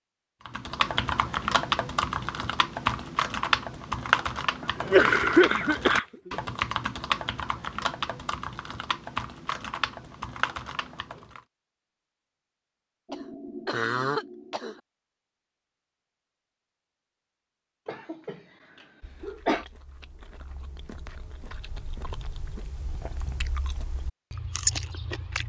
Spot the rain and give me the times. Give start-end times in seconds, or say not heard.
not heard.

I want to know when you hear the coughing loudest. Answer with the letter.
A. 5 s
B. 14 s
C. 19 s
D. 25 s
A.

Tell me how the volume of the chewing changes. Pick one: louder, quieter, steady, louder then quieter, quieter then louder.
louder.